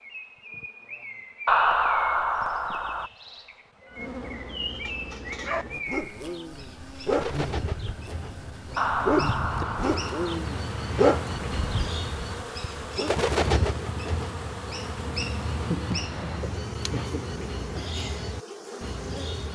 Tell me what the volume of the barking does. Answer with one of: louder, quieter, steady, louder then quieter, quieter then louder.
louder then quieter.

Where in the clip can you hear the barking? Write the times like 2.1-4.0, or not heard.
4.8-13.2.